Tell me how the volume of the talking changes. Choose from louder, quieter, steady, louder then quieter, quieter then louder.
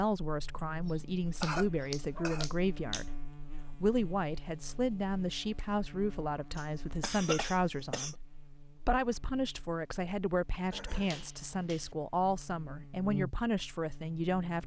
steady.